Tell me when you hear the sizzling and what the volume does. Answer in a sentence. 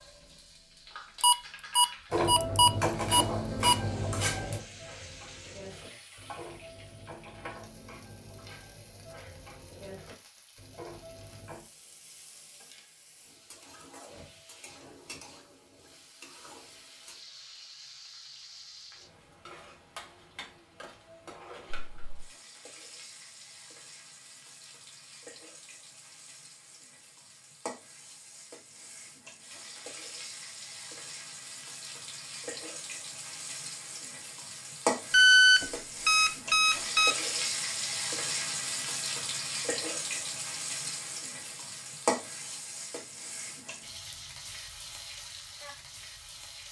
The sizzling can be heard from 0.0 to 46.6 s, getting louder.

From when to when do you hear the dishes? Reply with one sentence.
You can hear the dishes from 2.1 to 11.7 s.